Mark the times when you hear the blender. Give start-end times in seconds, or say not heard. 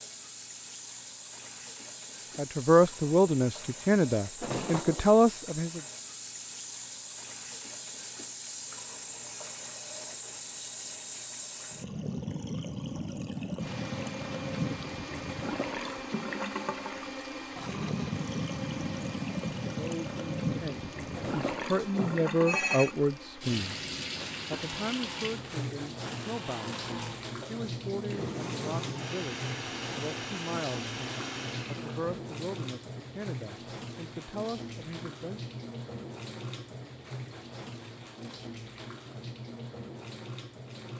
13.6-32.1.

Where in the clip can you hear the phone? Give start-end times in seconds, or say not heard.
4.4-5.1, 21.1-22.9.